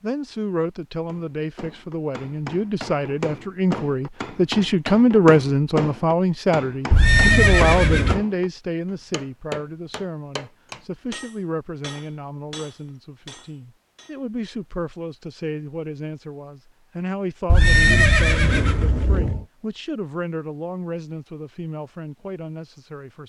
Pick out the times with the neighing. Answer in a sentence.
The neighing can be heard from 6.9 to 8.2 s and from 17.4 to 19.4 s.